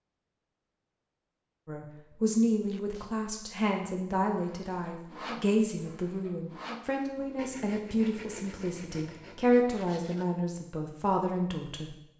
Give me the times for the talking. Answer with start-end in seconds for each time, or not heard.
1.6-12.1.